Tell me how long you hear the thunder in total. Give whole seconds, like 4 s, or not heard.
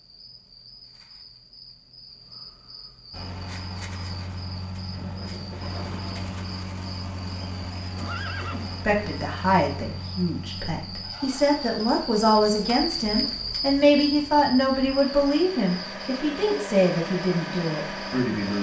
2 s.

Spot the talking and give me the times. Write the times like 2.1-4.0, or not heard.
8.8-18.5.